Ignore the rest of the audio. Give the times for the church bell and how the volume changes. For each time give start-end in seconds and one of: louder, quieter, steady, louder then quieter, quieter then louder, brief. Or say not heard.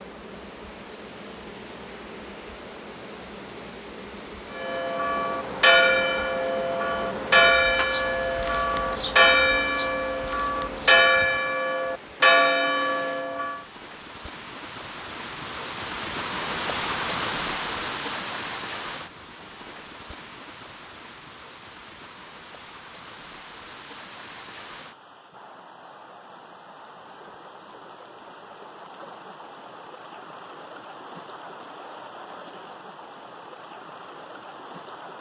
4.5-13.7 steady.